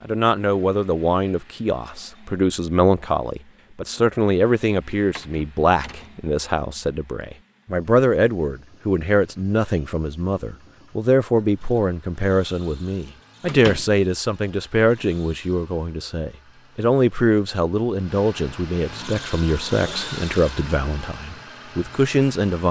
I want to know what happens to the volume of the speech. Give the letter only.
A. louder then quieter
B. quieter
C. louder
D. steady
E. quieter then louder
D.